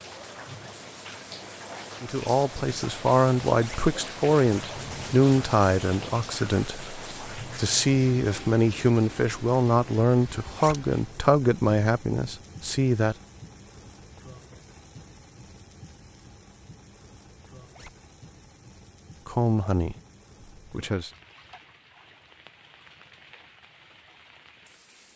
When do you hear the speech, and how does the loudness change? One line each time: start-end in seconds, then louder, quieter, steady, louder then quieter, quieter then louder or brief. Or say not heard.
2.0-13.2 steady
19.2-19.9 brief
20.7-21.1 brief.